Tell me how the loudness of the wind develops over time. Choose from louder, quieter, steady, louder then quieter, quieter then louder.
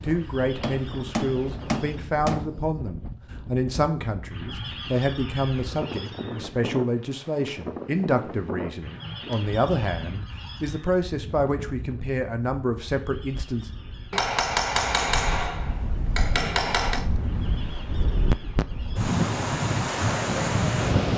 louder.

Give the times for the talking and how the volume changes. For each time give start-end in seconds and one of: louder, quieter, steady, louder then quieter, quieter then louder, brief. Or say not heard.
0.0-13.7 steady.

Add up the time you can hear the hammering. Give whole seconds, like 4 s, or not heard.
5 s.